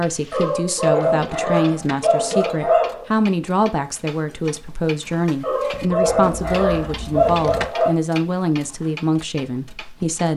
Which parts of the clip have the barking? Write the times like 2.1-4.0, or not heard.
0.3-3.0, 5.4-7.9.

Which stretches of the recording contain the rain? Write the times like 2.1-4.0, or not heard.
not heard.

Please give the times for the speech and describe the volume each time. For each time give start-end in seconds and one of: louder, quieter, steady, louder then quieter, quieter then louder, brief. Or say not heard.
0.0-10.3 steady.